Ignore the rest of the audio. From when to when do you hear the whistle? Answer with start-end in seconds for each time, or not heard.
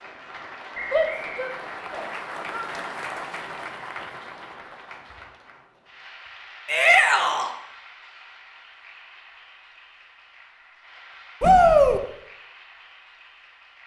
0.7-1.6.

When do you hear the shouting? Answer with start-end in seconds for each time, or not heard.
0.9-2.7, 6.7-7.5, 11.4-12.0.